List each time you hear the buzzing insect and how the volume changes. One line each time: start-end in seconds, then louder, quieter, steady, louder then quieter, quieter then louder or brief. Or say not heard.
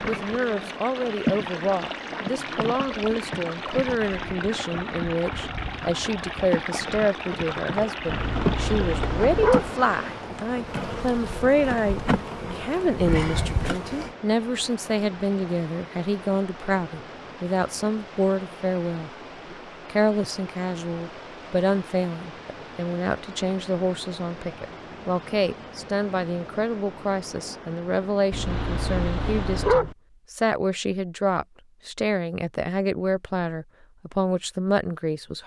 0.0-14.1 quieter then louder.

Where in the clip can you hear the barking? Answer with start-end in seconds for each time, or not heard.
8.1-9.7, 28.3-29.9.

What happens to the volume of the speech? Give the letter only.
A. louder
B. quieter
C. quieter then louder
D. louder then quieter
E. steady
E.